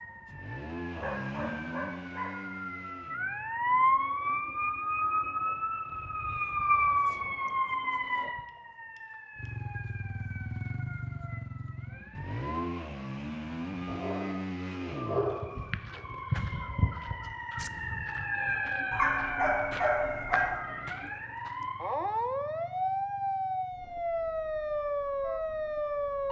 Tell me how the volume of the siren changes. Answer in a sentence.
The volume of the siren goes down, then up.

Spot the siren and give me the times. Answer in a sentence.
You can hear the siren from 0.0 to 26.2 s.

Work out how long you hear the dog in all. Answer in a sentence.
The dog can be heard for 5 seconds in total.